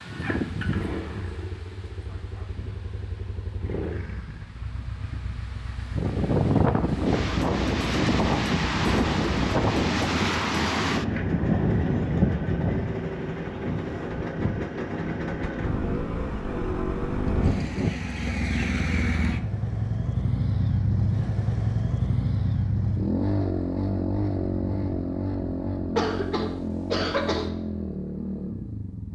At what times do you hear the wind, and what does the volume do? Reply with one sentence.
You can hear the wind from 0.0 to 17.9 s, getting louder then quieter.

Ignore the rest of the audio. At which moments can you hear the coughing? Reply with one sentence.
You can hear the coughing from 25.9 to 27.5 s.